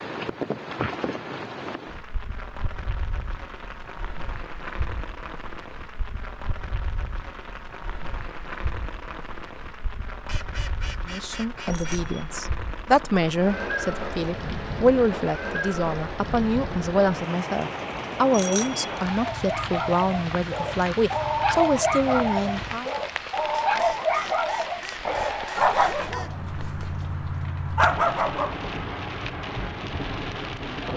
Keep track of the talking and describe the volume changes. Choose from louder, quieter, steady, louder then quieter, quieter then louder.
steady.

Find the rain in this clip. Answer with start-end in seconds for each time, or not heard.
0.0-30.9.